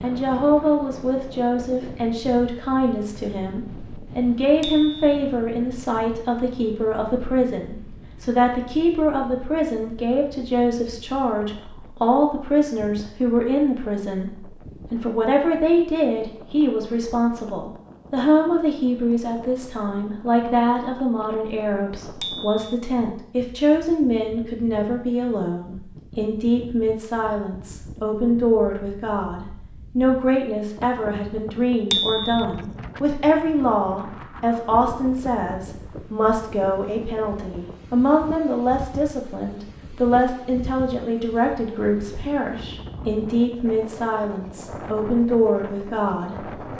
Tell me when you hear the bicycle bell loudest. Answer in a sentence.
The loudest moment of the bicycle bell is at 32 seconds.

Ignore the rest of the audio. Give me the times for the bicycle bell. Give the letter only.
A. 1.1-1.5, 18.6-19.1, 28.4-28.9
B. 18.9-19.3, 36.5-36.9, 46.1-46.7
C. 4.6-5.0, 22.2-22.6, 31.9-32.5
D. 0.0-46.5
C.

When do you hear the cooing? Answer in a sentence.
The cooing can't be heard in this clip.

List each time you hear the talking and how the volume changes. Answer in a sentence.
You can hear the talking from 0.0 to 46.5 s, at a steady volume.